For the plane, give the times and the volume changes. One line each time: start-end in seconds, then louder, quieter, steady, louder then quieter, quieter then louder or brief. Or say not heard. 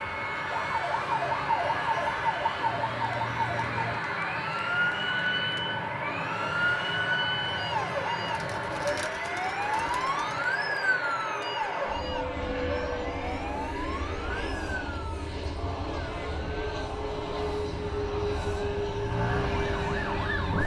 0.0-20.6 steady.